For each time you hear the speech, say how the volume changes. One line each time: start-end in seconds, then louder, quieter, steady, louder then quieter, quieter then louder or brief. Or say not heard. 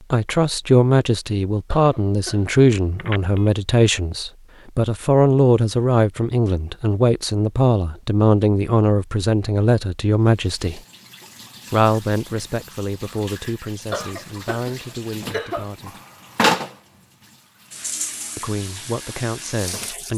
0.1-10.8 steady
11.7-16.0 quieter
18.4-20.1 brief.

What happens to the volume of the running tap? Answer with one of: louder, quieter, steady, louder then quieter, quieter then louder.
louder then quieter.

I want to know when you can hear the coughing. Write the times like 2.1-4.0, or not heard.
1.6-2.6, 13.9-15.8.